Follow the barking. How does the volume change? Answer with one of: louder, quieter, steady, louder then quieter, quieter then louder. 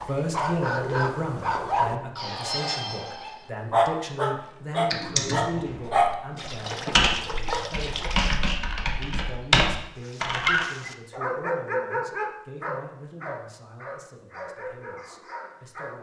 quieter.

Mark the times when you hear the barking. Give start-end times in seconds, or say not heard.
0.0-7.7, 10.1-15.9.